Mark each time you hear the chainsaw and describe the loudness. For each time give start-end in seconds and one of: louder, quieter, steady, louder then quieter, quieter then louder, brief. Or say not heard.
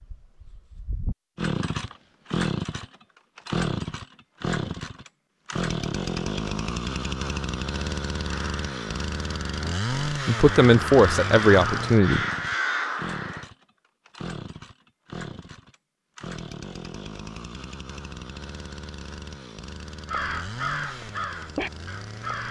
0.1-22.4 quieter.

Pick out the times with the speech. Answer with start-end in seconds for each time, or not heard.
10.1-12.2.